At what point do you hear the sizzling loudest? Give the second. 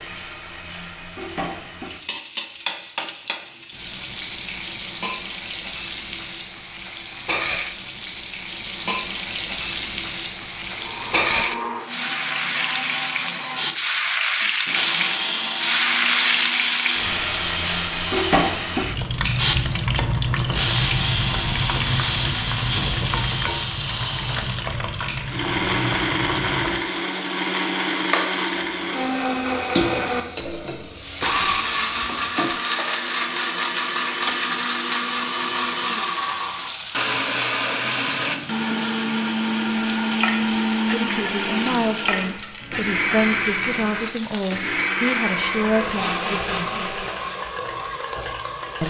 16 s.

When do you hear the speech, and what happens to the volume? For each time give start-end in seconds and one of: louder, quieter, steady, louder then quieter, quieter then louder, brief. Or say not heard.
40.8-46.9 steady.